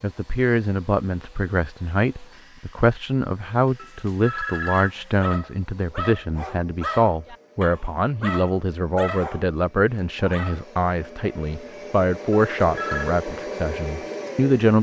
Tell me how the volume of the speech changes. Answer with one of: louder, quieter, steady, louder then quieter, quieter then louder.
steady.